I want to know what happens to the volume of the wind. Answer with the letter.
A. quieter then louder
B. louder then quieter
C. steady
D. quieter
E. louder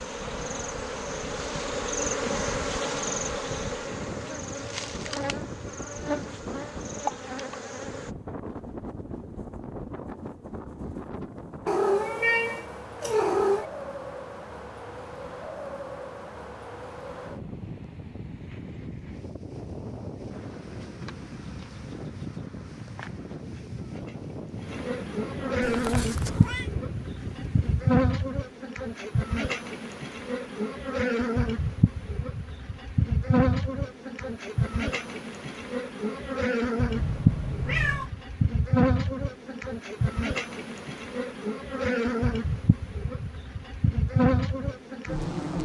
C.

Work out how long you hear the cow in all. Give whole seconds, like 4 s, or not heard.
not heard.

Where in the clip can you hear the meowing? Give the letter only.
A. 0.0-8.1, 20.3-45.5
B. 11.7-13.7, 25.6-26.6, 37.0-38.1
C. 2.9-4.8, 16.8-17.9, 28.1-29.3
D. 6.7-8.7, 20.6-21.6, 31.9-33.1
B.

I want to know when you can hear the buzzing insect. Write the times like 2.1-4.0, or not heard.
0.0-8.1, 20.3-45.5.